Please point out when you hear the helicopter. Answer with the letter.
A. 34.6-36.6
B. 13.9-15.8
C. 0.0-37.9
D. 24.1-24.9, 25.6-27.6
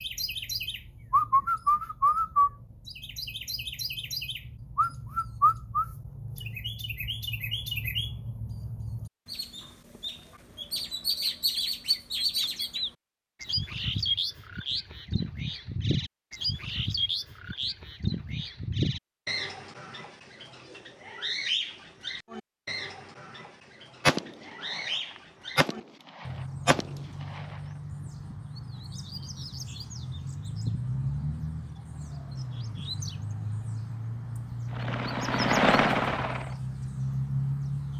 A.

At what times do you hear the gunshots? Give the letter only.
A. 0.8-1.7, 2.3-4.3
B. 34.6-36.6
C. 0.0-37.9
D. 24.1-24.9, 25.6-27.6
D.